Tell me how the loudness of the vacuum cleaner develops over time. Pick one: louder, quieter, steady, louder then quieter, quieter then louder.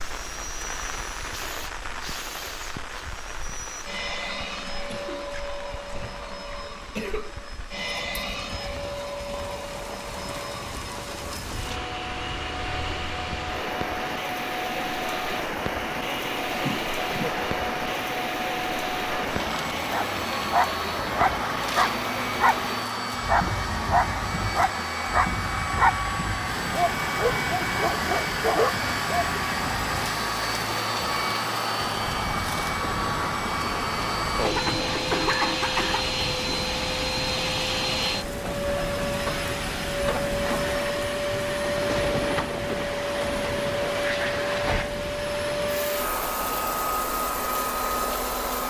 louder.